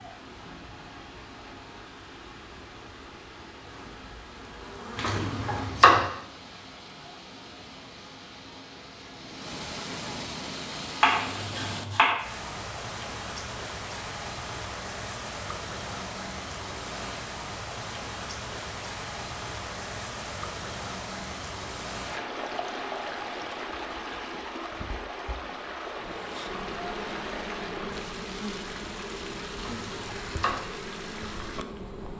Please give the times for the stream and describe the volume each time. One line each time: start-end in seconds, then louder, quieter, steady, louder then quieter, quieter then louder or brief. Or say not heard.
0.0-32.1 louder.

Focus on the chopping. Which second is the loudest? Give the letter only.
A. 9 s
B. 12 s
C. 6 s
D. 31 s
C.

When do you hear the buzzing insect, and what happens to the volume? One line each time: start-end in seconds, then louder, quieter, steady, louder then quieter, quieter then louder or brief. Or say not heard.
3.6-5.8 brief
25.9-32.1 steady.